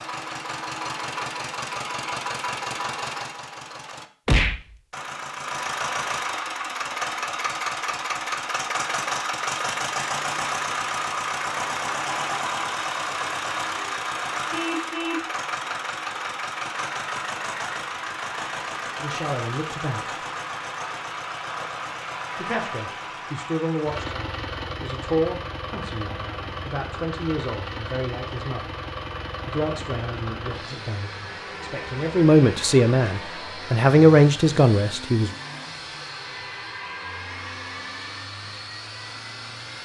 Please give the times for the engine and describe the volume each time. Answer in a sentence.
You can hear the engine from 0.0 to 39.8 s, getting quieter.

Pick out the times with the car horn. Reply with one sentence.
You can hear the car horn from 14.5 to 15.3 s.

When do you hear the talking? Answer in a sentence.
You can hear the talking from 19.0 to 20.1 s, from 22.4 to 28.8 s and from 29.4 to 35.3 s.